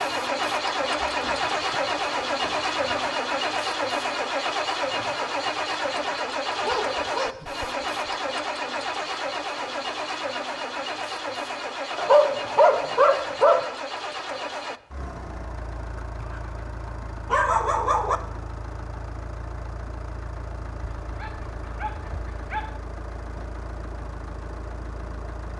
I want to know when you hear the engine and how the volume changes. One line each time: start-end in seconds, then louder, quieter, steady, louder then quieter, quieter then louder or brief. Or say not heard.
0.0-25.5 quieter.